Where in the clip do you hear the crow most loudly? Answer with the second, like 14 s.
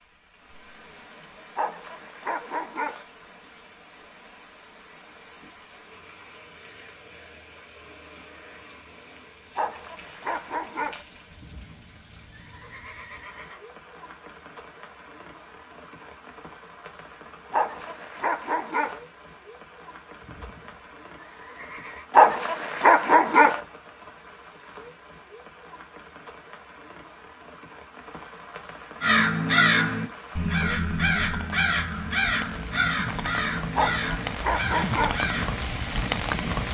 30 s.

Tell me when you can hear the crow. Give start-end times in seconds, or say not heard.
29.0-35.6.